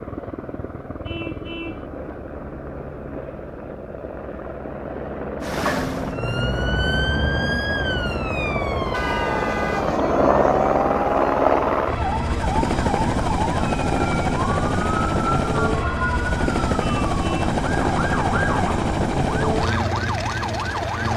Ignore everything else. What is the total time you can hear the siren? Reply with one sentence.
The siren can be heard for 16 seconds in total.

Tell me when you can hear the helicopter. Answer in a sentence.
You can hear the helicopter from 0.0 to 21.1 s.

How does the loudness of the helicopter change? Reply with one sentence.
The loudness of the helicopter goes up.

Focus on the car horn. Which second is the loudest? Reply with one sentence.
The loudest moment of the car horn is at 9 seconds.